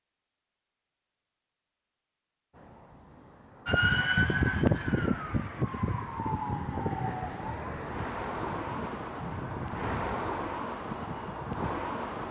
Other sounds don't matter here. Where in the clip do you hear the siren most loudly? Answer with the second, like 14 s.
4 s.